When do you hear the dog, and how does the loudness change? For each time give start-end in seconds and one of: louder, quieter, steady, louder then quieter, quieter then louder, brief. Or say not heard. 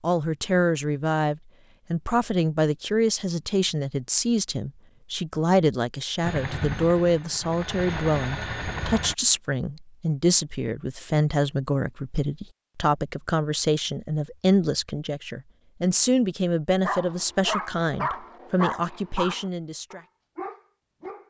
16.8-21.2 quieter then louder.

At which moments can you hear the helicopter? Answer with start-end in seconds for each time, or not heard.
6.2-9.2.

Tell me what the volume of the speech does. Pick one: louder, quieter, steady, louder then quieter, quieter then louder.
steady.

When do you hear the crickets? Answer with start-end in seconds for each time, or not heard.
not heard.